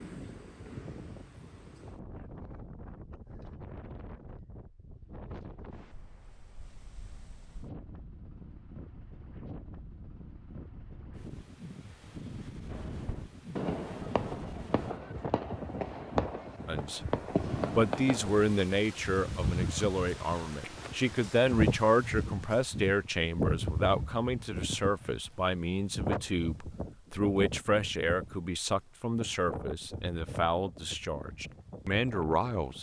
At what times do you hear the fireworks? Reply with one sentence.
The fireworks can be heard from 12.7 to 18.4 s.